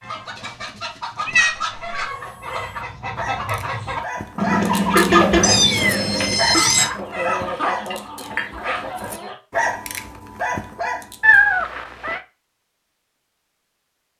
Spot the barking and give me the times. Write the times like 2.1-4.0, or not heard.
2.0-11.4.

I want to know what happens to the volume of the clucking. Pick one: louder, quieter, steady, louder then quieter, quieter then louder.
louder then quieter.